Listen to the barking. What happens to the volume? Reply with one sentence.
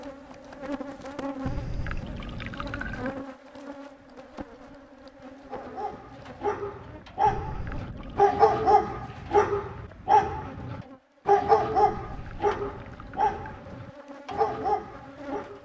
The loudness of the barking goes up, then down.